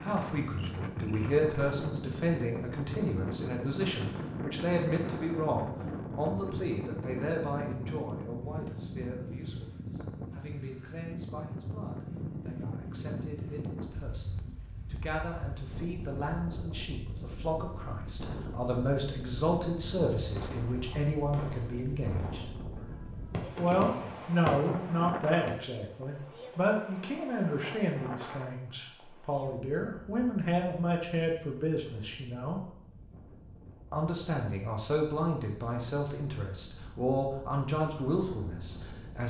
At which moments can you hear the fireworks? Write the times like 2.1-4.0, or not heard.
20.3-25.6.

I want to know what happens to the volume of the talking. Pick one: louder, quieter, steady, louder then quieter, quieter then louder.
quieter then louder.